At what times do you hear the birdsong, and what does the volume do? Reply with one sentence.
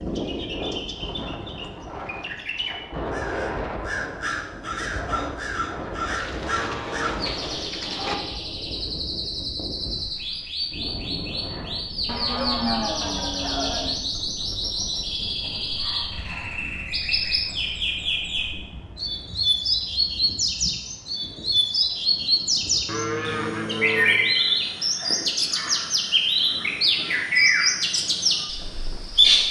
The birdsong can be heard from 0.0 to 29.4 s, getting louder.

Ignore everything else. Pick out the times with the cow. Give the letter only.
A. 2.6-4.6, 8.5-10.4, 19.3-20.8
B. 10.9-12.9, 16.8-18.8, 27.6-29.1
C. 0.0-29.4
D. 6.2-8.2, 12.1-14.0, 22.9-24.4
D.